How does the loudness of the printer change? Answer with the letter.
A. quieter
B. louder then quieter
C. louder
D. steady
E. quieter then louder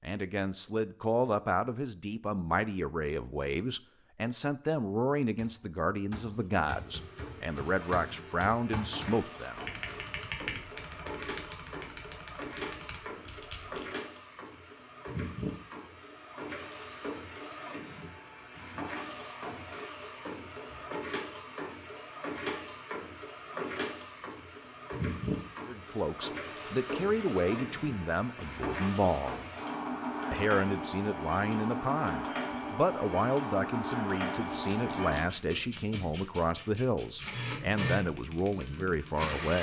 C.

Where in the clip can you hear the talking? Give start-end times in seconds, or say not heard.
0.0-9.6, 25.6-29.4, 30.3-39.5.